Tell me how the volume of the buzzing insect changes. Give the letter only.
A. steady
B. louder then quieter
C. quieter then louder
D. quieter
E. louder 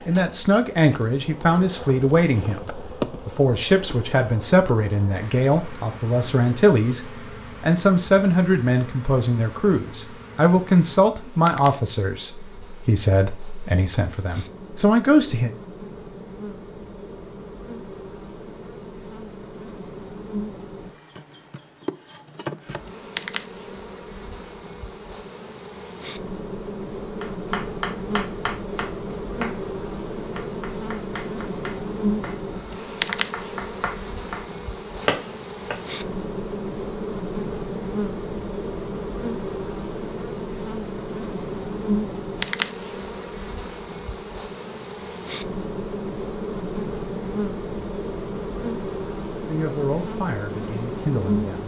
E.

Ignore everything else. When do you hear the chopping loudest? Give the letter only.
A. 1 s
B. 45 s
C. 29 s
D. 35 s
D.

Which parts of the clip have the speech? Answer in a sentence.
The speech can be heard from 0.1 to 15.5 s and from 49.5 to 51.6 s.